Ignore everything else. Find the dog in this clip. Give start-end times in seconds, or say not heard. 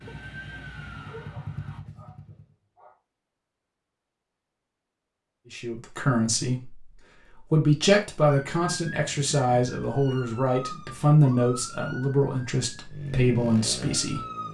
0.1-3.0.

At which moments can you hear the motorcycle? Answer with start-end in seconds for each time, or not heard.
0.1-2.5, 12.8-14.4.